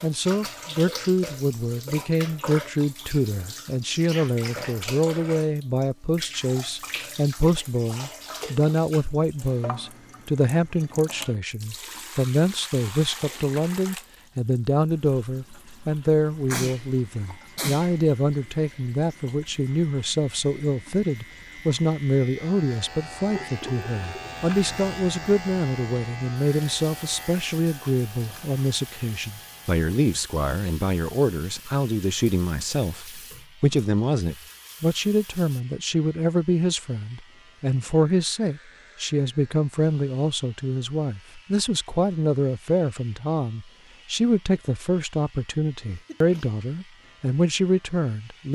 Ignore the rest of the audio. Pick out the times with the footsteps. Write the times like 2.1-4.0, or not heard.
not heard.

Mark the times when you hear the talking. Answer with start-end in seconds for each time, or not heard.
0.0-48.5.